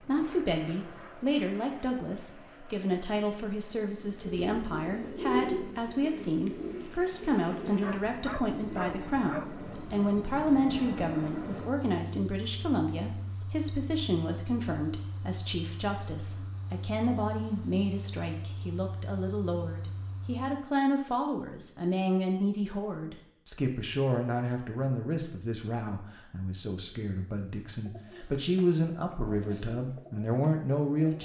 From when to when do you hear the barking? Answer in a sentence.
The barking can be heard from 7.8 to 9.6 s.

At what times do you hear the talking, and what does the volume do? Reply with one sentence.
The talking can be heard from 0.0 to 31.2 s, at a steady volume.